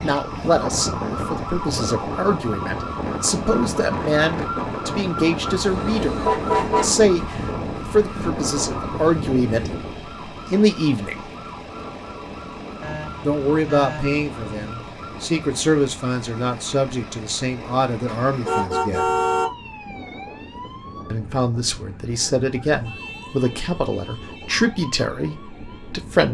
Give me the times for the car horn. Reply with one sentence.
You can hear the car horn from 5.5 to 7.0 s, from 12.8 to 14.7 s and from 18.1 to 19.4 s.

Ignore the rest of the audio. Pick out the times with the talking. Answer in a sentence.
The talking can be heard from 0.0 to 6.2 s, from 6.8 to 11.3 s, from 13.2 to 19.1 s and from 21.1 to 26.2 s.